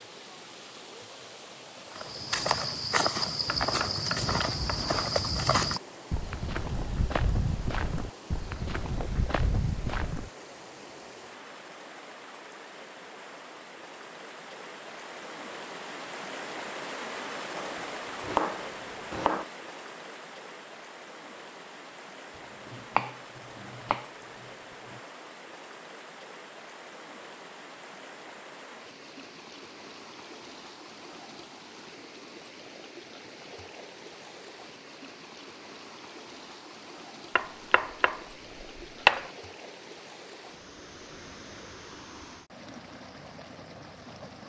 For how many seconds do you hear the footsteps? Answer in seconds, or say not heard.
8 s.